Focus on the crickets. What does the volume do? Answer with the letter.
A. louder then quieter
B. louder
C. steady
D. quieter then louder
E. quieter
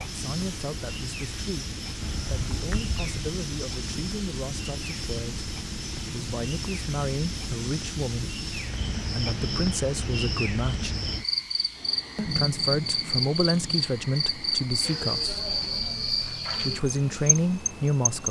B.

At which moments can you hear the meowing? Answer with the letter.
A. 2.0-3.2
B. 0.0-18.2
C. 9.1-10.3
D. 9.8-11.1
A.